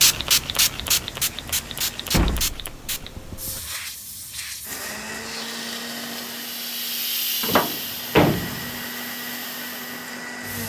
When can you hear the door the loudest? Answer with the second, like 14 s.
8 s.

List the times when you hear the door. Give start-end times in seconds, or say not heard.
2.1-3.6, 7.4-8.7.